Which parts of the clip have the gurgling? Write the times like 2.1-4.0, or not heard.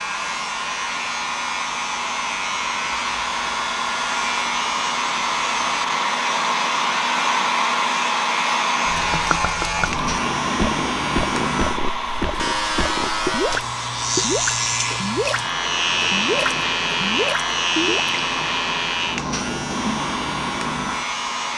8.8-18.1.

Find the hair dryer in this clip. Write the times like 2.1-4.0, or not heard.
0.0-21.5.